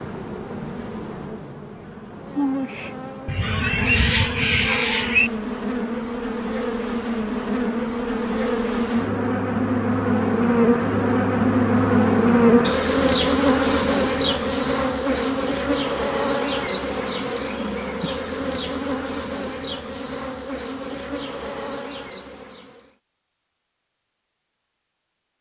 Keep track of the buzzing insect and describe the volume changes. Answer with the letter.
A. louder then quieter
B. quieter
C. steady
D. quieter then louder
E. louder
A.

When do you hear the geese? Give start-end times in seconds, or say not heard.
3.2-5.3.